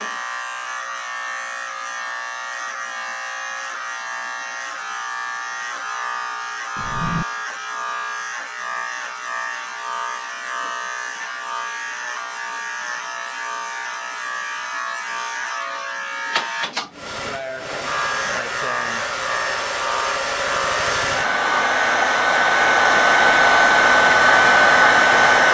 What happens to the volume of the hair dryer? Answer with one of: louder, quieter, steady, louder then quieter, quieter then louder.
louder.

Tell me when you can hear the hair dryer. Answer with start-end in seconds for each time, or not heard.
16.9-25.5.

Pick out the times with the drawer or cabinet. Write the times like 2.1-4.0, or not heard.
6.8-7.2.